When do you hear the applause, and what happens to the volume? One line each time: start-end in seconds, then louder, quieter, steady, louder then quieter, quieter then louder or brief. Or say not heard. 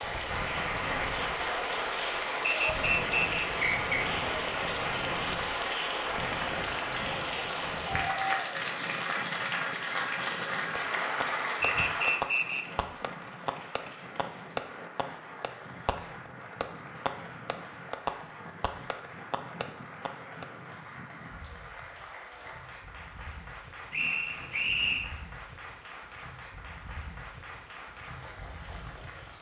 0.0-29.3 quieter.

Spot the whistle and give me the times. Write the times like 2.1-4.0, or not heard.
2.6-4.0, 11.6-12.7, 23.9-25.1.